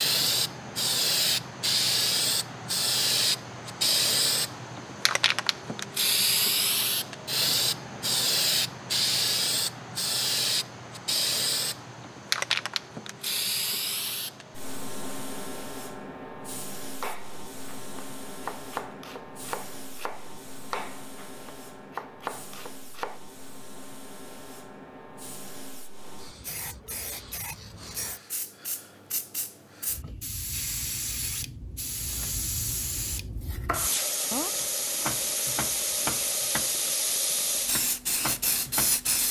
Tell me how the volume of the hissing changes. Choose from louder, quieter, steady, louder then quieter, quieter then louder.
quieter then louder.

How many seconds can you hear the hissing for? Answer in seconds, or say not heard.
39 s.